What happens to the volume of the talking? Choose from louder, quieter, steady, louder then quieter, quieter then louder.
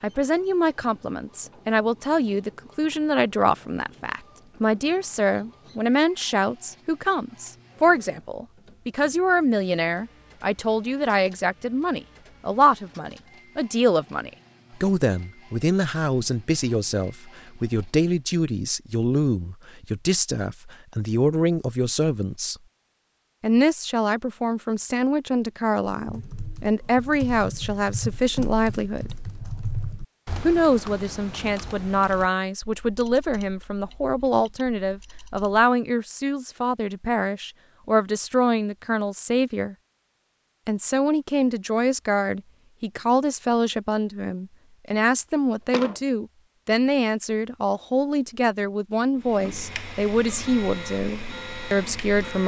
steady.